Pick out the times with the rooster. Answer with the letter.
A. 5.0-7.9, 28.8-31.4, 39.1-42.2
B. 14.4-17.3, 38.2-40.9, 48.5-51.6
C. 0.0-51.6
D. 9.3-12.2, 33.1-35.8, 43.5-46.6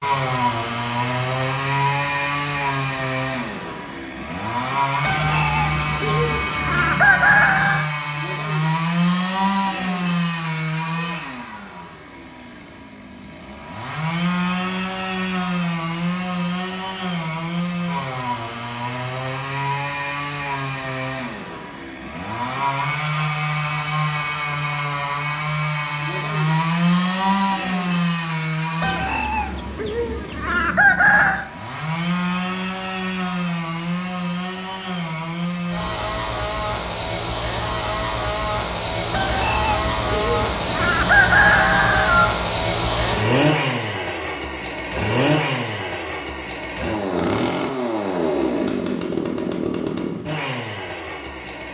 A.